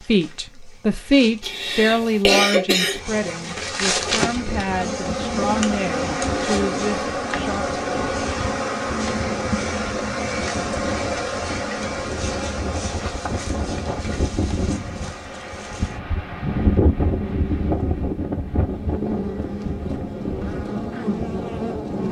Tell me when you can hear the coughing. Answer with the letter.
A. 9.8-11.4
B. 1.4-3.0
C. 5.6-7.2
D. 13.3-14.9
B.